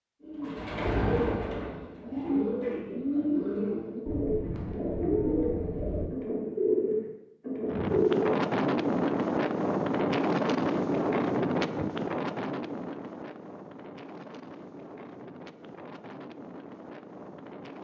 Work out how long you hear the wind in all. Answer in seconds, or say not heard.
10 s.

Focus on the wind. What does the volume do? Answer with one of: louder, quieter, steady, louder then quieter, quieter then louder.
quieter.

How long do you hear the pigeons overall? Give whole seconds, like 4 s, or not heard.
8 s.